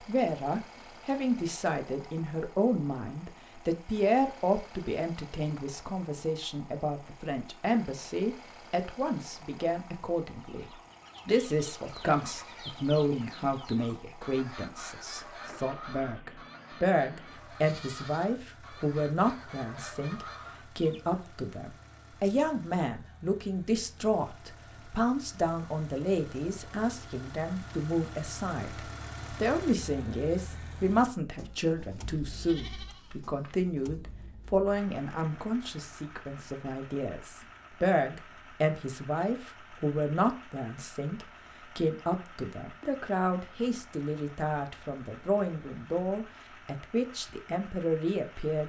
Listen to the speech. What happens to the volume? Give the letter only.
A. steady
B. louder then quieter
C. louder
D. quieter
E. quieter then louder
A.